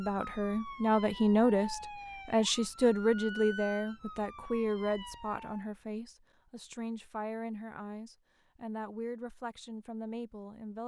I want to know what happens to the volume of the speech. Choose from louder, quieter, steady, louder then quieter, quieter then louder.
quieter.